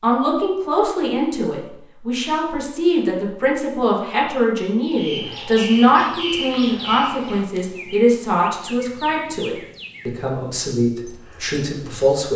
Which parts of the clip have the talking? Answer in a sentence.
The talking can be heard from 0.0 to 12.3 s.